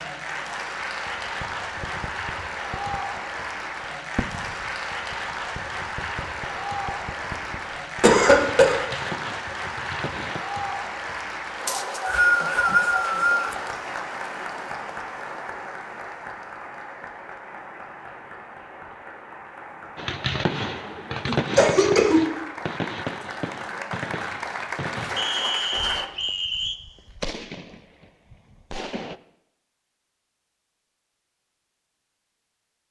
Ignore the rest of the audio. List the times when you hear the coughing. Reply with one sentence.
The coughing can be heard from 8.0 to 8.8 s and from 21.2 to 22.2 s.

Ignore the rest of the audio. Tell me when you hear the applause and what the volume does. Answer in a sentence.
The applause can be heard from 0.0 to 26.1 s, getting quieter then louder.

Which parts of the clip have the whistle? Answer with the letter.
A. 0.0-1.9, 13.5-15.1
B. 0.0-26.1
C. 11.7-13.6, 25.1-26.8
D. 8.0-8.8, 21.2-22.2
C.